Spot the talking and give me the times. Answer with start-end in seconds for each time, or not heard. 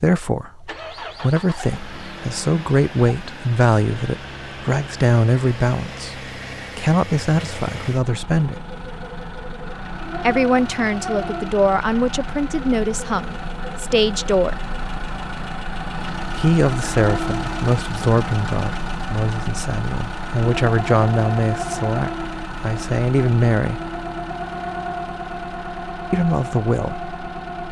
0.0-8.6, 10.2-14.6, 16.4-23.9, 26.1-27.1.